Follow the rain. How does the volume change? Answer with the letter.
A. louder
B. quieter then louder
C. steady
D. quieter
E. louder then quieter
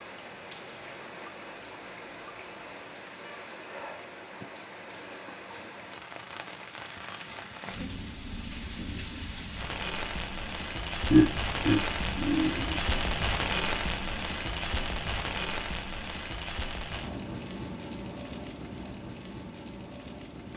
E.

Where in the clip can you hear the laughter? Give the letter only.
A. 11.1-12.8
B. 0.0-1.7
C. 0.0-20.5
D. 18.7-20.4
A.